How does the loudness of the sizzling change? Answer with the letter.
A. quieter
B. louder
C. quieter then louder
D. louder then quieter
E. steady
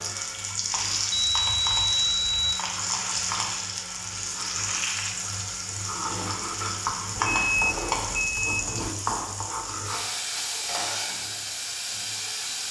E.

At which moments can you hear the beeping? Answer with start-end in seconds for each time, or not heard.
1.1-2.5, 7.2-8.9.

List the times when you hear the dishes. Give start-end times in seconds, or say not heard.
not heard.